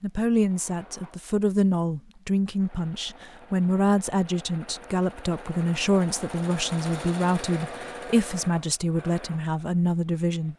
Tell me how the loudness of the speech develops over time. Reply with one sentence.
The loudness of the speech stays about the same.